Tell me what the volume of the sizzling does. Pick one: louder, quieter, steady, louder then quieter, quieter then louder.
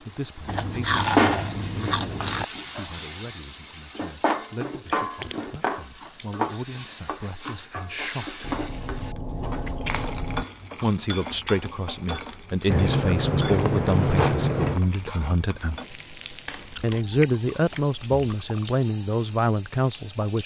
quieter.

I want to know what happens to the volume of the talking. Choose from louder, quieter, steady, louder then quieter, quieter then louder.
louder.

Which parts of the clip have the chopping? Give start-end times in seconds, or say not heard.
not heard.